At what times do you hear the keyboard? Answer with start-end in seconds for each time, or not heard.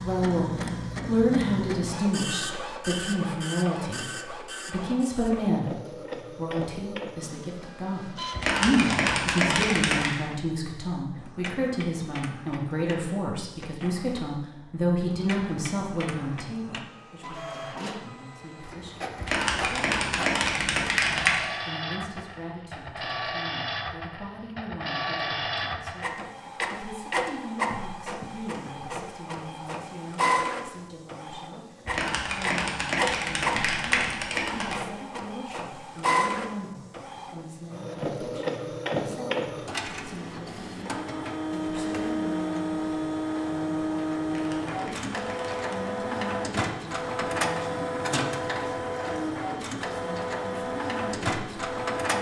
8.3-10.2, 19.1-21.4, 31.9-34.8, 44.2-45.8.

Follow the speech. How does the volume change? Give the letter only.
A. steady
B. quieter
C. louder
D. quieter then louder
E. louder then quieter
B.